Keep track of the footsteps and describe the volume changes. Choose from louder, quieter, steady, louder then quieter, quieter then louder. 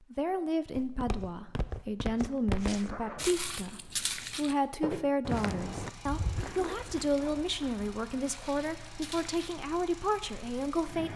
quieter.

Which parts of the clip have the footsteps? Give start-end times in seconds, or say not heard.
0.7-9.6.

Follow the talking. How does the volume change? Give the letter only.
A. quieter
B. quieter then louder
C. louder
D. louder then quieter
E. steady
E.